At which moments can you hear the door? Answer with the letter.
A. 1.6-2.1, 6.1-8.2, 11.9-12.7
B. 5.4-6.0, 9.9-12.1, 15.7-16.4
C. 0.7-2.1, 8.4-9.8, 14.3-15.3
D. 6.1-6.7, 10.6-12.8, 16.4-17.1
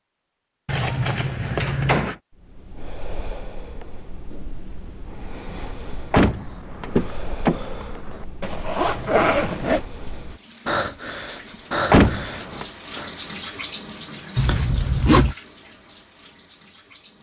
A.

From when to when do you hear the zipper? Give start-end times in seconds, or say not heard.
0.7-2.1, 8.4-9.8, 14.3-15.3.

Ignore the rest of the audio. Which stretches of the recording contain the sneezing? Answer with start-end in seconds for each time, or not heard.
not heard.